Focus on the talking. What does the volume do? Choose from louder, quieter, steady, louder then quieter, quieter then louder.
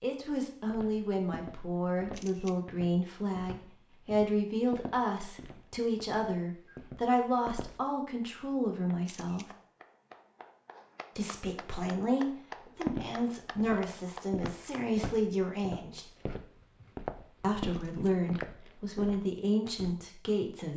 steady.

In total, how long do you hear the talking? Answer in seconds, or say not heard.
18 s.